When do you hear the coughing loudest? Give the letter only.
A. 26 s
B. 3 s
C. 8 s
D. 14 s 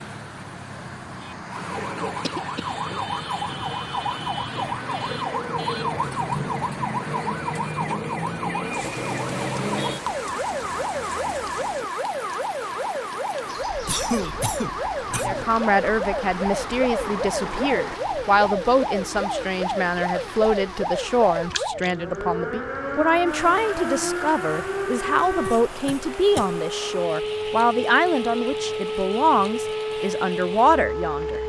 D.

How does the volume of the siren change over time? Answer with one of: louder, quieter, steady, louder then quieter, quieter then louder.
steady.